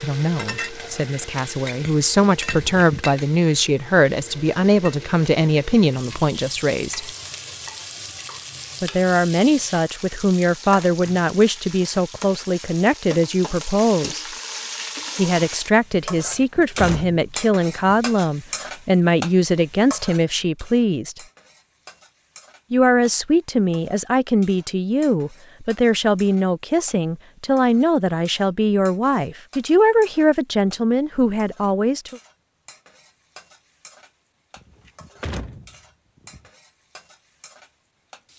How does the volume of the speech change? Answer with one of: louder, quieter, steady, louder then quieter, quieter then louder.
steady.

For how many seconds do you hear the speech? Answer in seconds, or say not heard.
28 s.